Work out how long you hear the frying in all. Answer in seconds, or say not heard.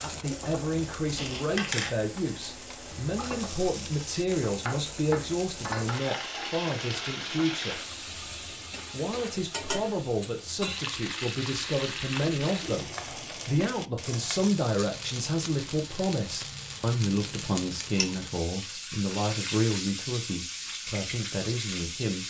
22 s.